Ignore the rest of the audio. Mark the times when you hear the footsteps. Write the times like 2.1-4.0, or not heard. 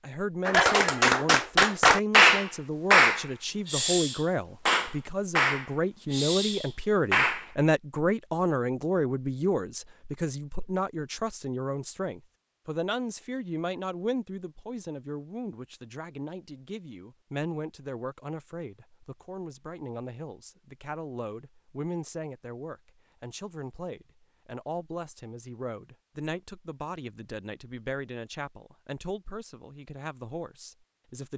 not heard.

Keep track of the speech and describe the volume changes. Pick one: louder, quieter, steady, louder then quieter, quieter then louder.
quieter.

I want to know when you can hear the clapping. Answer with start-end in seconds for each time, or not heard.
0.5-7.5.